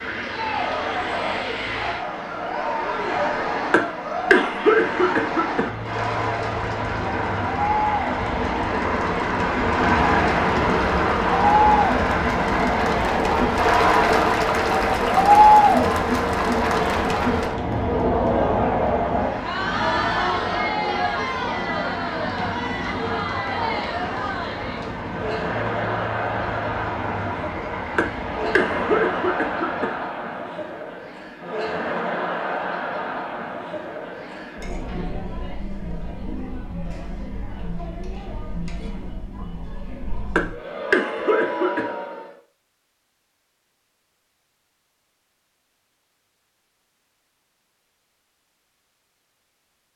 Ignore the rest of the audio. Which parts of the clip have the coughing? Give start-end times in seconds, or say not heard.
3.7-5.7, 27.9-29.9, 40.4-41.9.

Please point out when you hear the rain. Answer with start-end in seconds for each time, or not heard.
not heard.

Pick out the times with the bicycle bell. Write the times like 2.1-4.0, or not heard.
not heard.